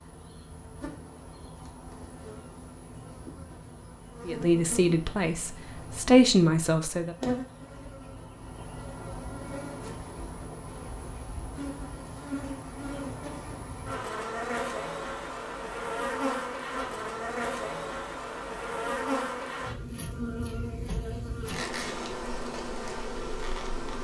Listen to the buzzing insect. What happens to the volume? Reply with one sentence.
The loudness of the buzzing insect goes up.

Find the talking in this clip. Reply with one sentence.
The talking can be heard from 4.2 to 7.2 s.